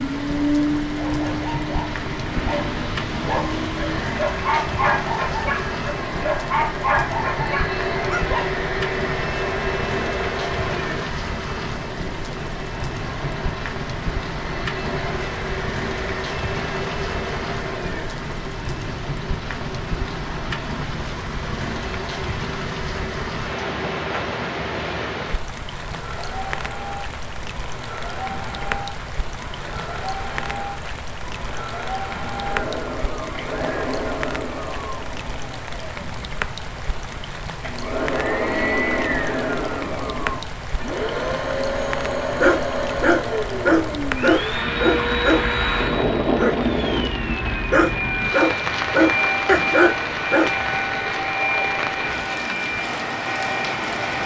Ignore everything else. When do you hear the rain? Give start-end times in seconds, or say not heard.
0.0-54.2.